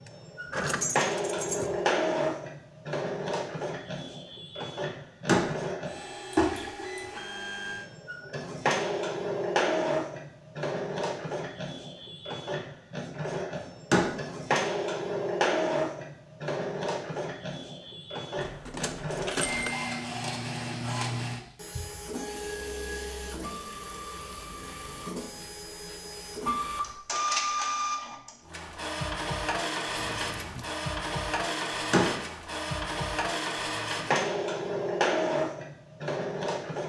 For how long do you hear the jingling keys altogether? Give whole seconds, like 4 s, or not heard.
4 s.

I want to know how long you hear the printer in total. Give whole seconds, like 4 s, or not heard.
37 s.